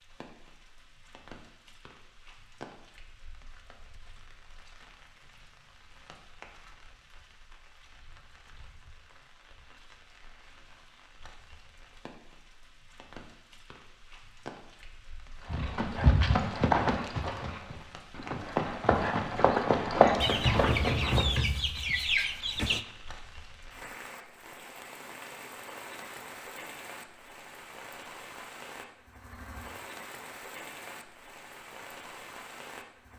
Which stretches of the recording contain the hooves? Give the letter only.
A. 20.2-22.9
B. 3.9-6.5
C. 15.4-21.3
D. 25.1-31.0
C.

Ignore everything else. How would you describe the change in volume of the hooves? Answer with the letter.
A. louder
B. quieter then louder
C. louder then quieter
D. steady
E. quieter
B.